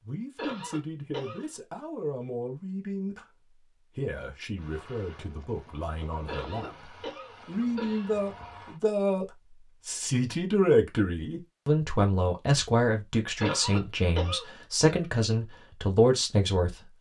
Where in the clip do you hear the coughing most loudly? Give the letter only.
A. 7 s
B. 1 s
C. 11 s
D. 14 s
D.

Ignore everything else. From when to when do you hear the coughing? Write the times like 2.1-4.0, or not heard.
0.3-1.5, 6.2-8.2, 13.4-14.9.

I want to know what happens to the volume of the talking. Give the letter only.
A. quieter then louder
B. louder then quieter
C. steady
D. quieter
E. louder
E.